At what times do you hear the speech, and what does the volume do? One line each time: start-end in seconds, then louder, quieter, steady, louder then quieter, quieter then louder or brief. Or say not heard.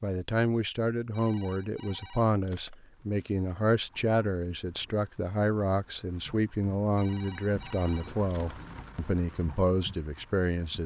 0.0-10.8 steady.